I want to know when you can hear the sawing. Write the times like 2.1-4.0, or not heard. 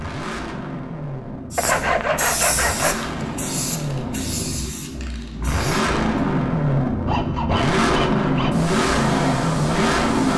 1.6-3.1, 7.0-8.7.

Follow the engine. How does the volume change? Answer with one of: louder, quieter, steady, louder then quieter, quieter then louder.
louder.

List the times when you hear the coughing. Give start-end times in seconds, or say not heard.
not heard.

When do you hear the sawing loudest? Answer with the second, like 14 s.
2 s.